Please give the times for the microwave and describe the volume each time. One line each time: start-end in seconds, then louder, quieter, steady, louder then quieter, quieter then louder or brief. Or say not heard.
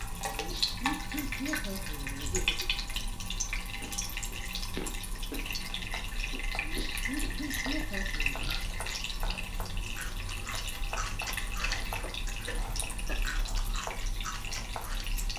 not heard.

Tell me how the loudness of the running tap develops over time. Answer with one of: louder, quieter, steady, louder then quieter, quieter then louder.
quieter.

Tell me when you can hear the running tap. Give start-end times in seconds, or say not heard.
0.0-15.3.